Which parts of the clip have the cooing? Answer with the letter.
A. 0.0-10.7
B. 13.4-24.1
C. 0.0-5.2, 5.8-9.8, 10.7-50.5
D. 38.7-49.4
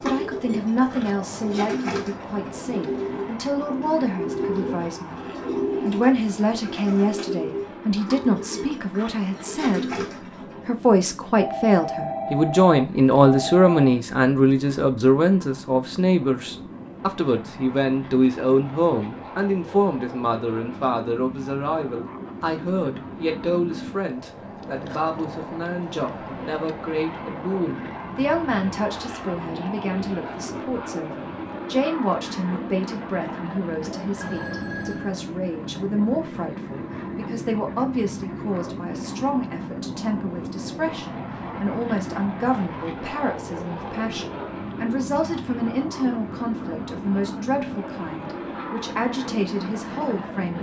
A.